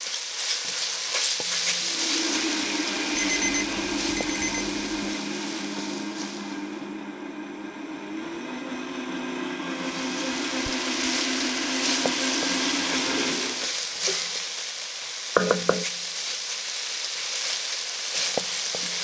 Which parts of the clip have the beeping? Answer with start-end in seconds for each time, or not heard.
3.1-5.2.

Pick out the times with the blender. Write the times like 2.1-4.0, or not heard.
1.8-13.8.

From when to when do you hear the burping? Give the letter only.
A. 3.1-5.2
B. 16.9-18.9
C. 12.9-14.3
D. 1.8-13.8
C.